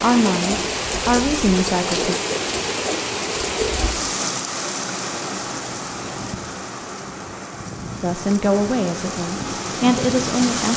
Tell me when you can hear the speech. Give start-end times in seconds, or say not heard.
0.0-2.1, 8.0-10.7.